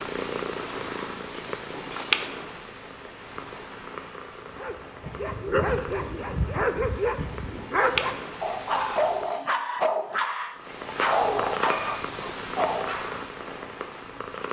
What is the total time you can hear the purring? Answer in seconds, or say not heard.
13 s.